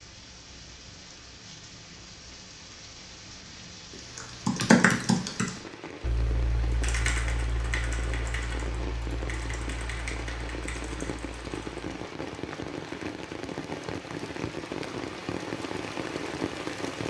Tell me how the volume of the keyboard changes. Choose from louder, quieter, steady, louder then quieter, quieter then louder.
quieter.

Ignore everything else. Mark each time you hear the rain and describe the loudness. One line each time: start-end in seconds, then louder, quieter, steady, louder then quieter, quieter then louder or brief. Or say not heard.
0.0-17.0 louder.